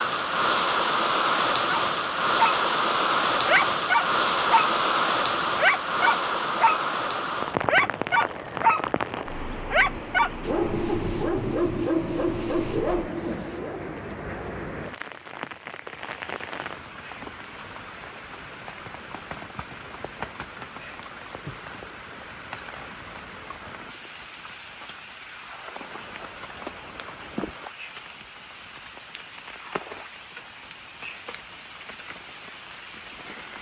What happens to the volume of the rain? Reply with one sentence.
The volume of the rain goes down.